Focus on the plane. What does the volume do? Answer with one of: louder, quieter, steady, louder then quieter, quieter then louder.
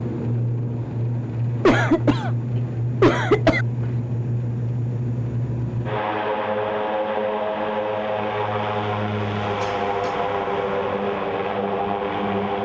steady.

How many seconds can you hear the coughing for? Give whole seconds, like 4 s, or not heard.
3 s.